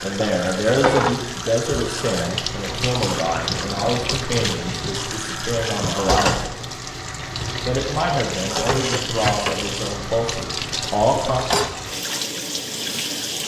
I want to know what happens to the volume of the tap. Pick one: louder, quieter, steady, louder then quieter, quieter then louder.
steady.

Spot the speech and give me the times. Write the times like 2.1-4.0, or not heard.
0.0-6.5, 7.7-11.4.